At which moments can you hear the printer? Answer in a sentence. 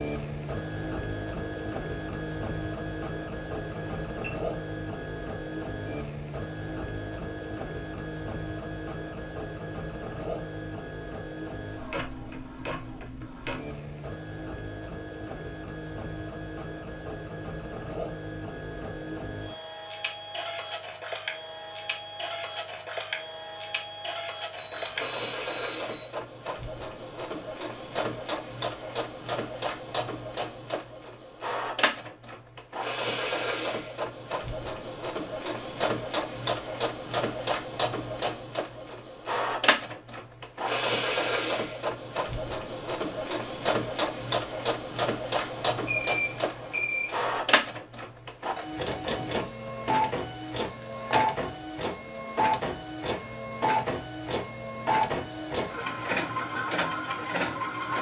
The printer can be heard from 0.0 to 57.9 s.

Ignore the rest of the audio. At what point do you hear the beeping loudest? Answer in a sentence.
The volume of the beeping peaks at 46 seconds.